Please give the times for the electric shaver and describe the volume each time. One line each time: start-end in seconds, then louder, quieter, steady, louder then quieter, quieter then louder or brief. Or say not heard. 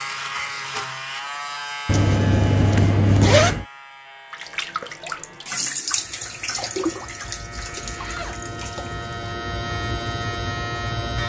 0.0-11.2 quieter then louder.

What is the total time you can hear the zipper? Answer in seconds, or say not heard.
3 s.